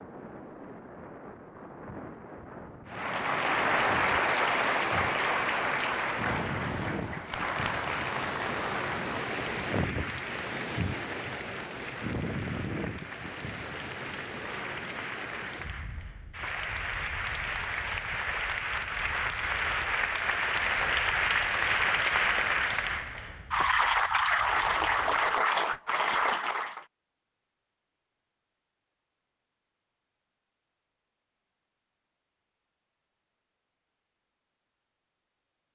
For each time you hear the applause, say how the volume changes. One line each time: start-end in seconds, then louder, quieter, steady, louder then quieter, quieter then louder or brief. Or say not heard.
2.9-26.9 quieter then louder.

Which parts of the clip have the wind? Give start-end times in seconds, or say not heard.
0.0-25.4.